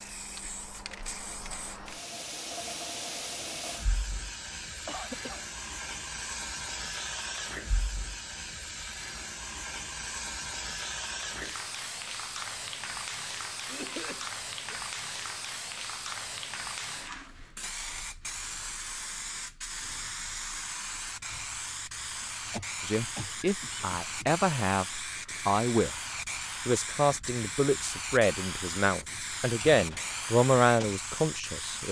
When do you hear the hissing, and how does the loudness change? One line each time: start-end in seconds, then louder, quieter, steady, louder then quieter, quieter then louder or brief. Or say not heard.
0.0-31.8 steady.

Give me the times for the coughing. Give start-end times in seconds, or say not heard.
4.8-5.5, 13.7-14.8, 22.5-24.4.